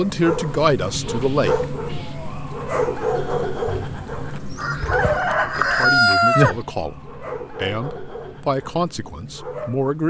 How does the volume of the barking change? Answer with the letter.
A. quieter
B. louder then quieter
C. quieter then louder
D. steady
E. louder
A.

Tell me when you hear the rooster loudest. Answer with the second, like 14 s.
6 s.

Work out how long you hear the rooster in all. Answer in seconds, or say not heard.
3 s.